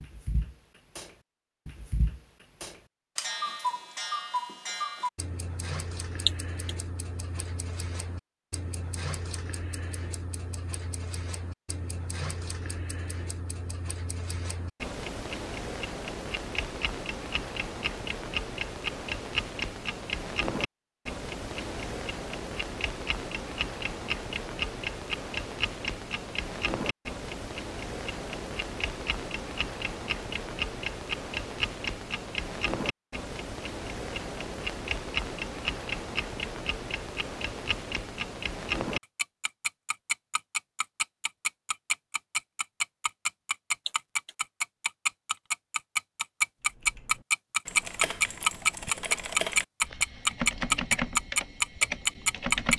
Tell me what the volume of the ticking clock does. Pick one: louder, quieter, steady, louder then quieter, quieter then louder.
louder.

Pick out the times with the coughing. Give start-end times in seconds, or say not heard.
6.2-6.8, 43.9-44.4.